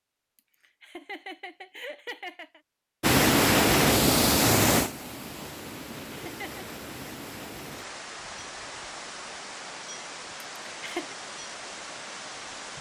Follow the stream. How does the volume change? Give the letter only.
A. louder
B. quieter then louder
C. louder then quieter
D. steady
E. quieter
E.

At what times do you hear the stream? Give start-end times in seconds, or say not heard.
3.0-12.7.